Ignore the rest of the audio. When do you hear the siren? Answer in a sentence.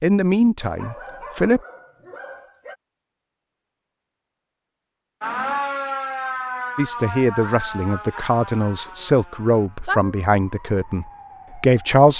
You can hear the siren from 5.2 to 12.1 s.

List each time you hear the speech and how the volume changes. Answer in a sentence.
You can hear the speech briefly from 0.0 to 1.6 s; and from 6.8 to 12.1 s, at a steady volume.